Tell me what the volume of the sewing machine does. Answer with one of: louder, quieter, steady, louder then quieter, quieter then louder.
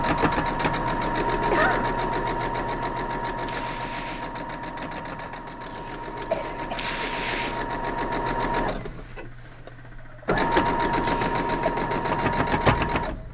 quieter then louder.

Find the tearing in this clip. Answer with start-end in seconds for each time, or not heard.
3.5-4.3, 6.8-7.6.